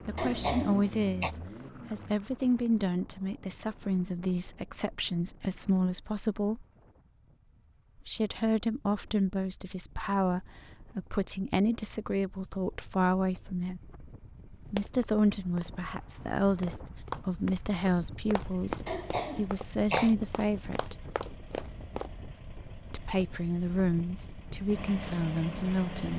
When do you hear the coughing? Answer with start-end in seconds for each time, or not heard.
0.1-1.4, 18.9-20.1.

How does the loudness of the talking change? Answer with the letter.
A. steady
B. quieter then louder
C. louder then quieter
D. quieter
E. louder
A.